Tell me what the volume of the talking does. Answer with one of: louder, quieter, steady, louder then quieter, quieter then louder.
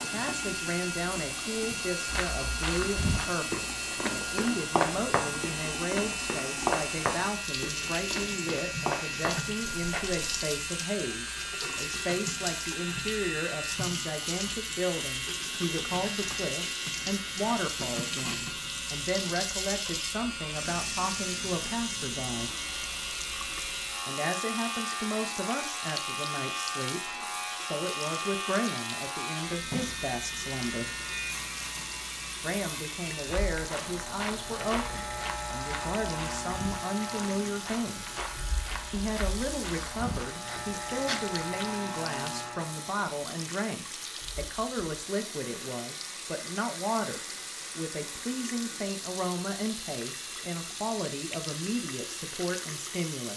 steady.